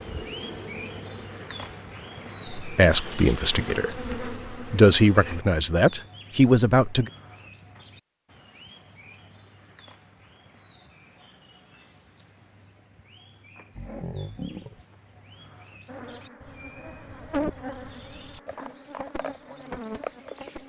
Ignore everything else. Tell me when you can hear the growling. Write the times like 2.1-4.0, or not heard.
13.7-14.8.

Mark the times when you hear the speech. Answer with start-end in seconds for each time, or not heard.
2.5-7.1.